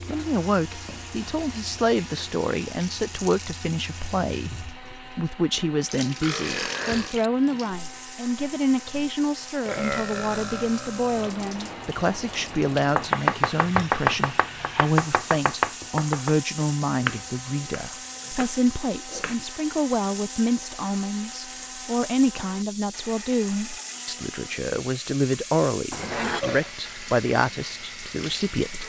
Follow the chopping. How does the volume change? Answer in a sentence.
The volume of the chopping goes down.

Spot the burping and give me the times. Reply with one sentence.
You can hear the burping from 6.2 to 7.2 s, from 9.7 to 11.3 s and from 25.9 to 26.7 s.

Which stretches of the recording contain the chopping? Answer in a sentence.
You can hear the chopping from 12.9 to 19.4 s.